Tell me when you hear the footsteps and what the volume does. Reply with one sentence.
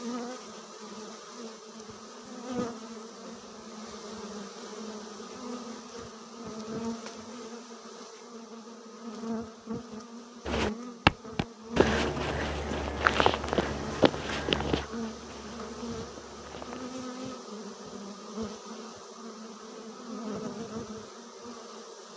You can hear the footsteps from 10.4 to 16.9 s, getting quieter.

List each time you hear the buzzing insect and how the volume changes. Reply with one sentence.
The buzzing insect can be heard from 0.0 to 22.1 s, at a steady volume.